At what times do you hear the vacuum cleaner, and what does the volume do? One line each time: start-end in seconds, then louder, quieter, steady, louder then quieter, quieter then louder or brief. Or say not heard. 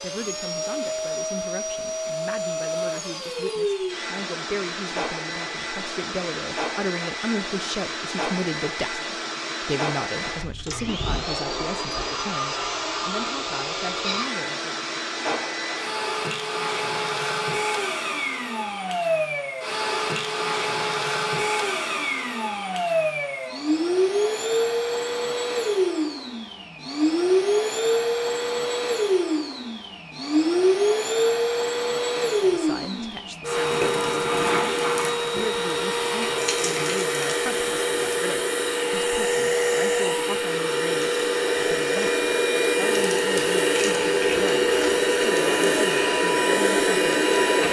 0.0-47.6 louder.